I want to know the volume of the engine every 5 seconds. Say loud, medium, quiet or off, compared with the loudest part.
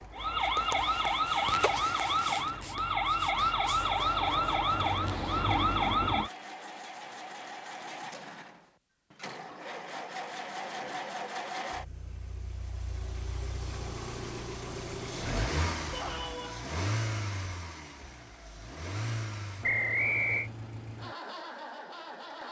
medium, medium, loud, loud, medium.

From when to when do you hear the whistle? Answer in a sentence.
You can hear the whistle from 19.6 to 20.5 s.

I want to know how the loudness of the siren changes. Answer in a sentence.
The loudness of the siren stays about the same.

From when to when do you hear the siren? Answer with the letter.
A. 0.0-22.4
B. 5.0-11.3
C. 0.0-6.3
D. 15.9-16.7
C.